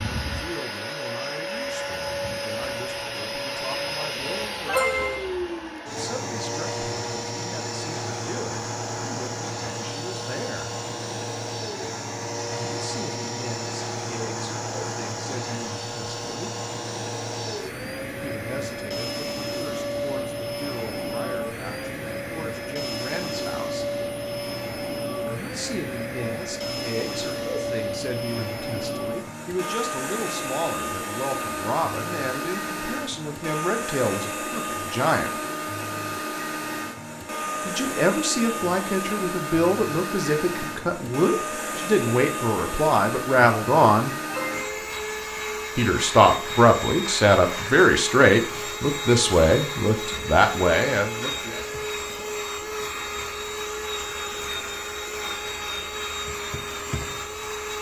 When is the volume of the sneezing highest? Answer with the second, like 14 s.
5 s.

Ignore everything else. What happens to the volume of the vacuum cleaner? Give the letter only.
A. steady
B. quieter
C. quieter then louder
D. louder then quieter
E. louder
A.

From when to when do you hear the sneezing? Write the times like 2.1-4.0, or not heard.
4.7-5.2, 44.2-45.0.